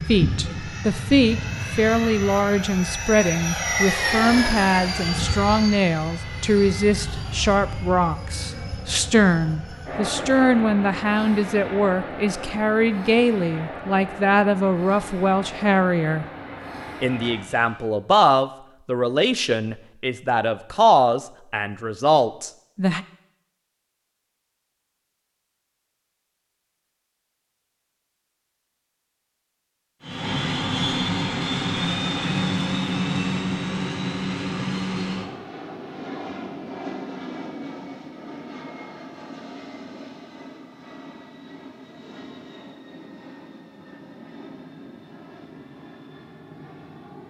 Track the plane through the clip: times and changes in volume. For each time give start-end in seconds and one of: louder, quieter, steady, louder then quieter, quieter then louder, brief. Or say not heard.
0.0-17.9 quieter
30.0-47.2 quieter.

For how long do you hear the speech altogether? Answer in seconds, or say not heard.
22 s.